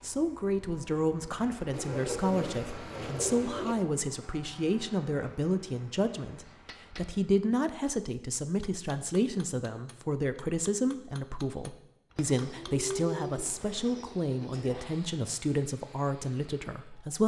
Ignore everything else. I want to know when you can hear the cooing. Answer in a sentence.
The cooing can be heard from 1.7 to 3.8 s and from 12.2 to 14.8 s.